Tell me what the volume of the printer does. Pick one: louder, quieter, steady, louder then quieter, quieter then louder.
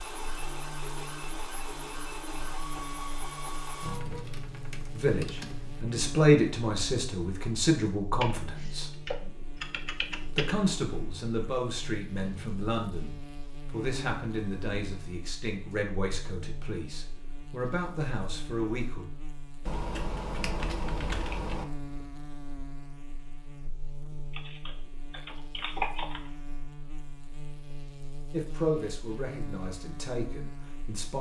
steady.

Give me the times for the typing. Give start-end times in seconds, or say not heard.
3.8-5.8, 8.2-10.6, 19.6-21.6, 24.3-26.3.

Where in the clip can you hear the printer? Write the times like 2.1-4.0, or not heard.
0.0-4.2.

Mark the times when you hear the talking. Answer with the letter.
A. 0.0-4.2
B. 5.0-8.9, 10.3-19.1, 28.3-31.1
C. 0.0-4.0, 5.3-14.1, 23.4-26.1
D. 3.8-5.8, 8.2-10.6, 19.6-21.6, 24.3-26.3
B.